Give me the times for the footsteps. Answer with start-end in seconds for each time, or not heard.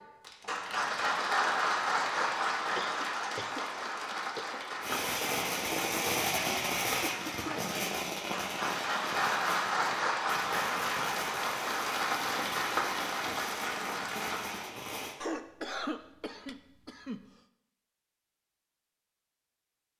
not heard.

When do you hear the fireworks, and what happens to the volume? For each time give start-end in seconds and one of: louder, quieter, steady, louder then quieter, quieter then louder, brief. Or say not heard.
4.8-15.2 quieter.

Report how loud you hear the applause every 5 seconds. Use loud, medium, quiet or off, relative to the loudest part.
loud, loud, loud, off.